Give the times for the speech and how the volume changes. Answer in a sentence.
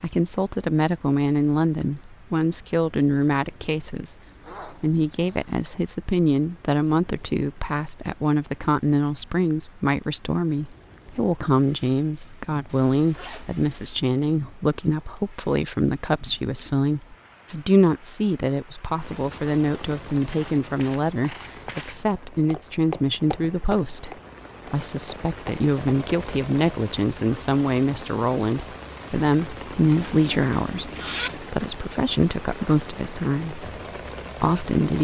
The speech can be heard from 0.0 to 33.7 s, at a steady volume; and briefly from 34.4 to 34.9 s.